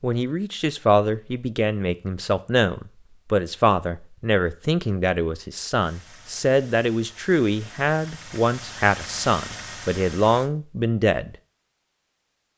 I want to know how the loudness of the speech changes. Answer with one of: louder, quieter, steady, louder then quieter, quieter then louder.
steady.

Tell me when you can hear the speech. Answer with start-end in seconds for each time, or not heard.
0.0-11.3.